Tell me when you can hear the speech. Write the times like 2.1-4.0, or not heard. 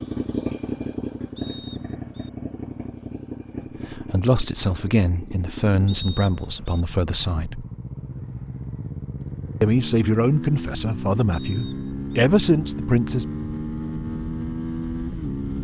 3.9-7.7, 9.6-13.2.